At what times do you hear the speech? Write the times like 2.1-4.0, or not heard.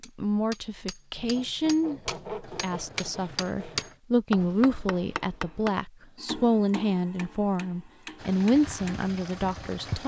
0.1-10.0.